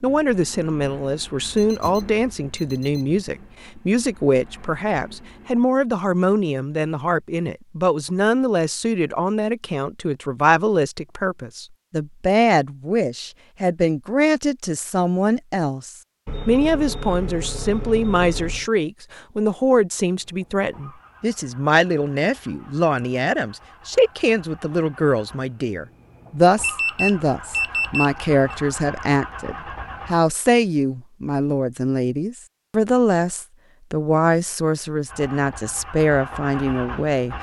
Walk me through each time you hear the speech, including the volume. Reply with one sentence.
The speech can be heard from 0.0 to 37.3 s, at a steady volume.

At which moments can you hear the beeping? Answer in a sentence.
You can hear the beeping from 1.6 to 3.2 s, from 16.2 to 18.7 s and from 26.6 to 28.6 s.